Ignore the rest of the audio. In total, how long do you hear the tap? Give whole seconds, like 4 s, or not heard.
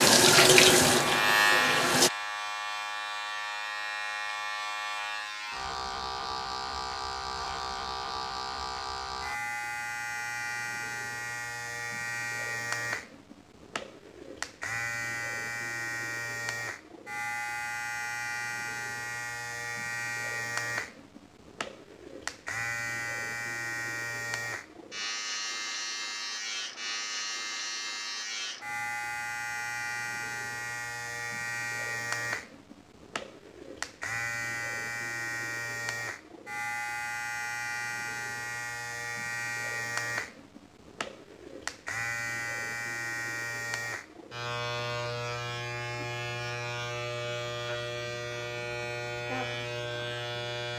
2 s.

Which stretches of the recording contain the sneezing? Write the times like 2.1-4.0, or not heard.
not heard.